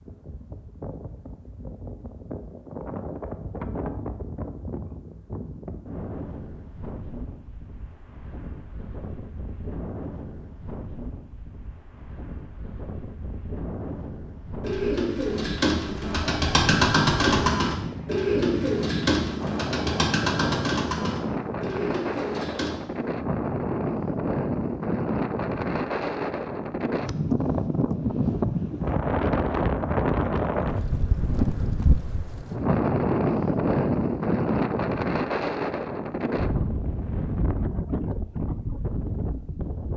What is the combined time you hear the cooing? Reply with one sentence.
The cooing can be heard for 8 seconds in total.